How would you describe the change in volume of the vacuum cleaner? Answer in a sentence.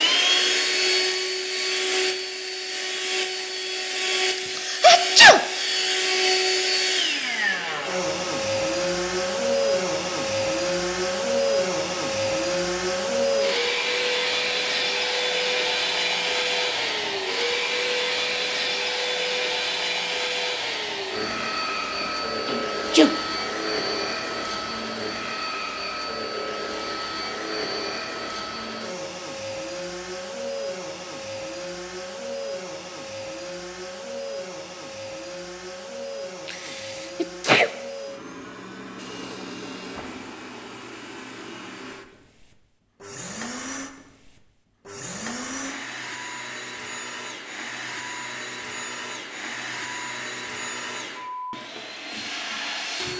The loudness of the vacuum cleaner goes down.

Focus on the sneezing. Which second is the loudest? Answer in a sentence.
The volume of the sneezing peaks at 5 seconds.